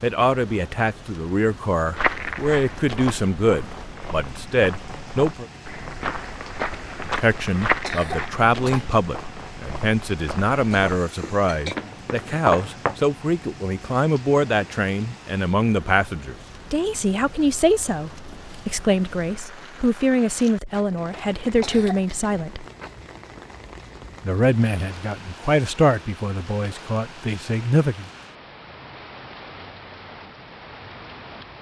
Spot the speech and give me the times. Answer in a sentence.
You can hear the speech from 0.0 to 5.5 s, from 7.0 to 22.6 s and from 24.2 to 28.1 s.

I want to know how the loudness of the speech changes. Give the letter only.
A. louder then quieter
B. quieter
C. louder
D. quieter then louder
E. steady
E.